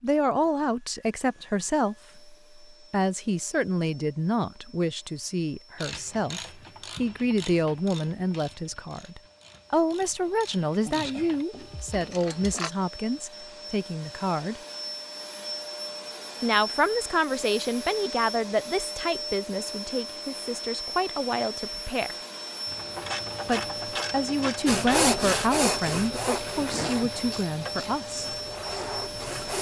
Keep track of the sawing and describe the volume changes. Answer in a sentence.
The volume of the sawing goes down, then up.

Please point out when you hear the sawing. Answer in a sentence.
You can hear the sawing from 24.6 to 29.5 s.